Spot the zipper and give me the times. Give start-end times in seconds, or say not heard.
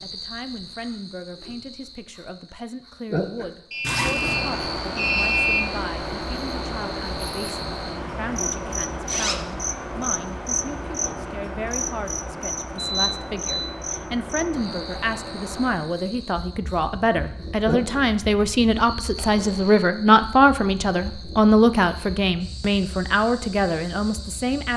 3.8-4.5, 9.1-9.6, 19.1-19.8.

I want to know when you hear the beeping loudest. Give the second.
5 s.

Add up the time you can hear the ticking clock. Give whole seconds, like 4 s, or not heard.
not heard.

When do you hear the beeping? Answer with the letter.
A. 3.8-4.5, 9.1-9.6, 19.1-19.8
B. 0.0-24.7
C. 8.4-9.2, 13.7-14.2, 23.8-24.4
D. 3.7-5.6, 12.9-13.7
D.